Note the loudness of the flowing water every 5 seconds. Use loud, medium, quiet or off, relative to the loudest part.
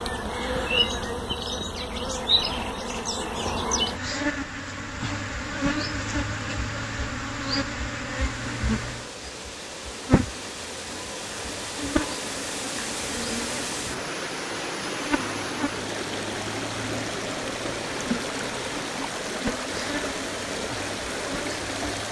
off, medium, loud, loud, loud.